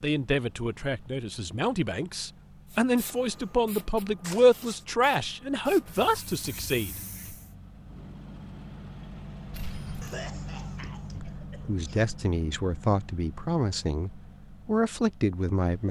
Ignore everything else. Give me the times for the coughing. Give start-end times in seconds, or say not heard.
10.0-12.0.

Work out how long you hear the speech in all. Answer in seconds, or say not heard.
12 s.